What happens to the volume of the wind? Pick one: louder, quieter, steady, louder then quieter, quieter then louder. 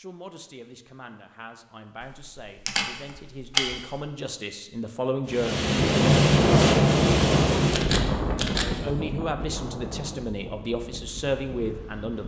quieter.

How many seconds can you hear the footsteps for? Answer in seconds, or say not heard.
not heard.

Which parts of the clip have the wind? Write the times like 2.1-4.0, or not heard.
5.2-12.2.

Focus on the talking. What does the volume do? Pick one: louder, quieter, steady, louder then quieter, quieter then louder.
louder.